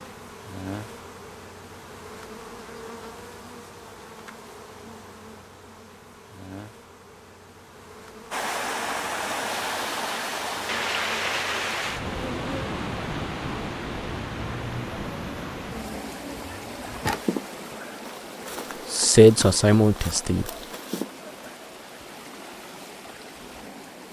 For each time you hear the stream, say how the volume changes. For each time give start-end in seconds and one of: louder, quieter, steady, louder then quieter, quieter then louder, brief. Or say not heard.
8.3-24.0 quieter.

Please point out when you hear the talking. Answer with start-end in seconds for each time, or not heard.
18.9-20.4.